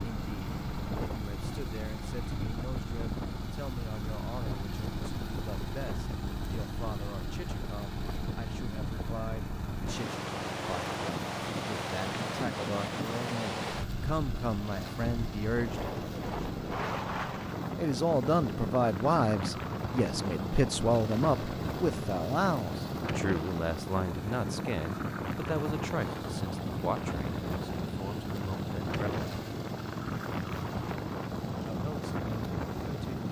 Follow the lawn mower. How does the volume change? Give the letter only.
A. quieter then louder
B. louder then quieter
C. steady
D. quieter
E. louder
C.